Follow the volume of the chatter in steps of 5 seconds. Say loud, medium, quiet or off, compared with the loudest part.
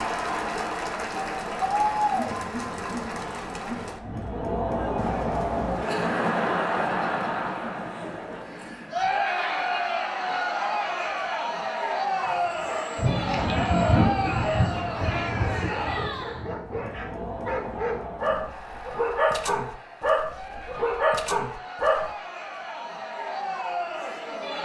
loud, loud, loud, medium, medium.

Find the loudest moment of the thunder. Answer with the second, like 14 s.
14 s.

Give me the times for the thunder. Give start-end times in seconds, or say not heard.
5.0-8.4, 12.9-16.9.